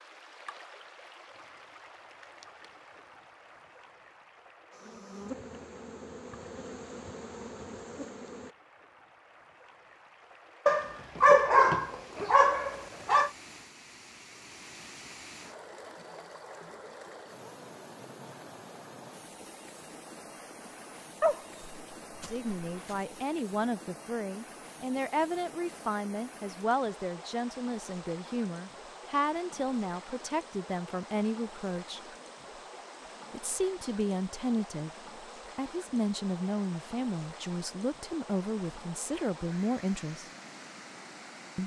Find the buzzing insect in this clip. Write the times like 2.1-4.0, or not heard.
4.7-8.6.